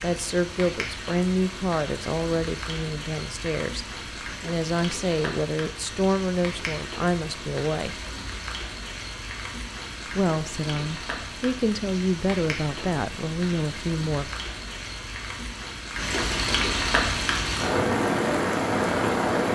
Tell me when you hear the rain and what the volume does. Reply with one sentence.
You can hear the rain from 0.0 to 19.5 s, getting louder.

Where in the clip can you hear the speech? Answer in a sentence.
You can hear the speech from 0.0 to 8.0 s and from 10.2 to 14.3 s.